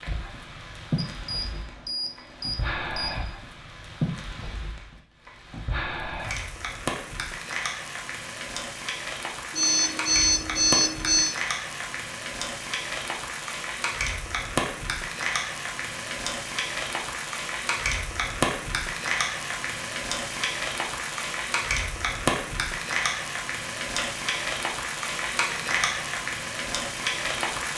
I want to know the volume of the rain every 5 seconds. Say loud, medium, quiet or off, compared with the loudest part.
medium, medium, loud, loud, loud, loud.